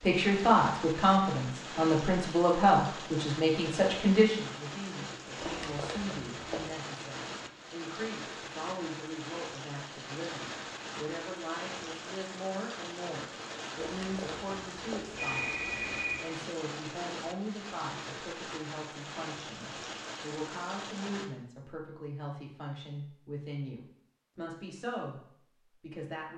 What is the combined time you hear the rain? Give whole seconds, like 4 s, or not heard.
21 s.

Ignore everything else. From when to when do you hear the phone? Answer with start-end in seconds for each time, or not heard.
5.4-6.8, 13.8-16.2.